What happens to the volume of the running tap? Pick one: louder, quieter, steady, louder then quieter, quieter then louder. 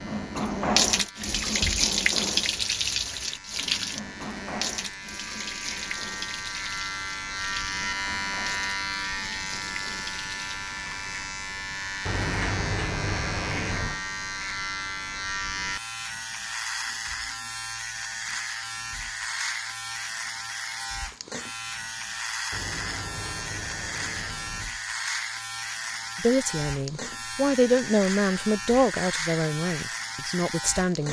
quieter.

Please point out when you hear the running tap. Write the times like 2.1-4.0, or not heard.
0.0-10.6.